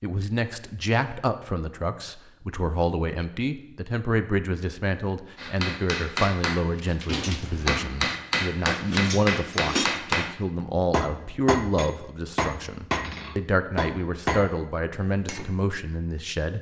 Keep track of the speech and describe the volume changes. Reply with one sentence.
The volume of the speech stays about the same.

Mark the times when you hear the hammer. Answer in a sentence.
You can hear the hammer from 5.3 to 15.5 s.